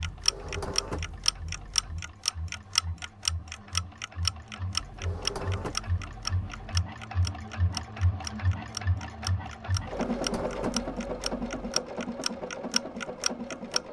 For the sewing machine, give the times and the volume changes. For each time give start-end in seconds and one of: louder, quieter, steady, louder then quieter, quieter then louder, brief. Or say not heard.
0.0-13.8 louder.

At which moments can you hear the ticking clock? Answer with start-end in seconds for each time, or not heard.
0.0-13.8.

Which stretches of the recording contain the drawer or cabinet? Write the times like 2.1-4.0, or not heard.
0.1-2.0, 4.8-6.7, 9.8-11.7.